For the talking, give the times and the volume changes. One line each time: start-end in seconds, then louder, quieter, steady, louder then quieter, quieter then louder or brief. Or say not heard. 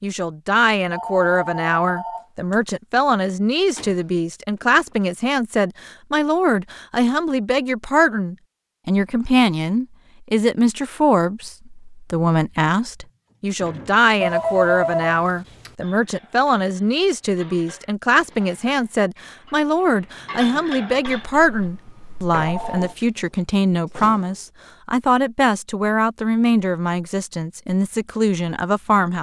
0.0-29.1 steady.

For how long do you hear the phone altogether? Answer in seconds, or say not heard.
5 s.